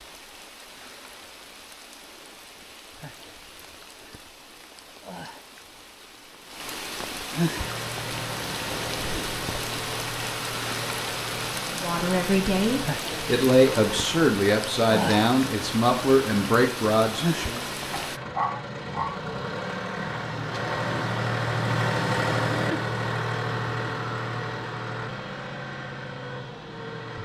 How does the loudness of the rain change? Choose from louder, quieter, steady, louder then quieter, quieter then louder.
louder.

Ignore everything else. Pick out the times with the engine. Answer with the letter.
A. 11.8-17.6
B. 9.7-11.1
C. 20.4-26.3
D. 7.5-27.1
D.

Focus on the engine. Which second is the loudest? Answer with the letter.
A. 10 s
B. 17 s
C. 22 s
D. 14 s
C.